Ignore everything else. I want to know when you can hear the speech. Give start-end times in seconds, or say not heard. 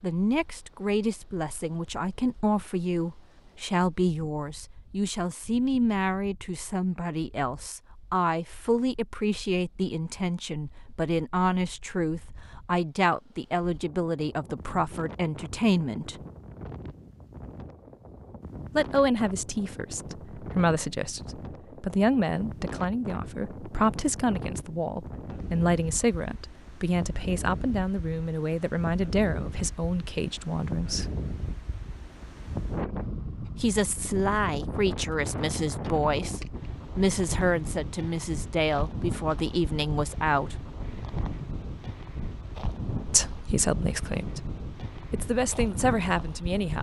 0.0-16.1, 18.8-31.1, 33.6-40.7, 43.0-46.7.